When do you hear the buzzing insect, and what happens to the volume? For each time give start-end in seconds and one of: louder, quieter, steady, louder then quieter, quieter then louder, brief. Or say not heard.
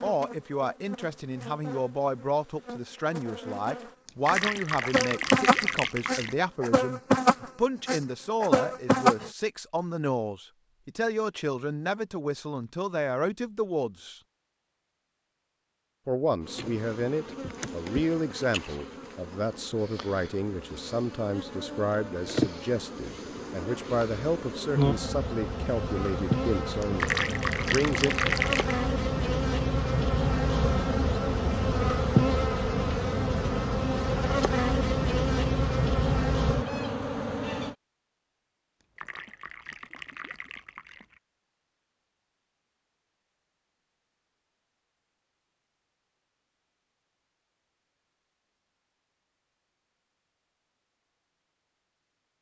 0.0-9.3 louder
16.4-37.8 louder.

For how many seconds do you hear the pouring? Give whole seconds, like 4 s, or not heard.
7 s.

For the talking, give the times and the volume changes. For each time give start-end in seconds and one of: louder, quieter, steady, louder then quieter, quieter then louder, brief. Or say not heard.
0.0-14.2 steady
16.1-28.1 steady.